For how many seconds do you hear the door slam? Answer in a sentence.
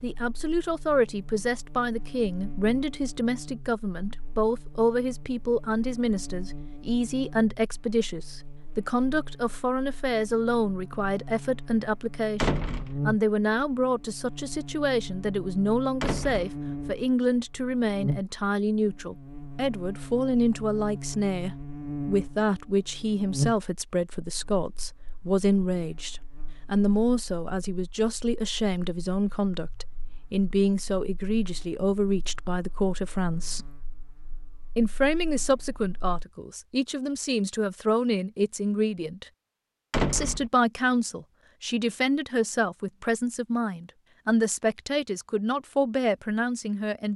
The door slam can be heard for 2 seconds in total.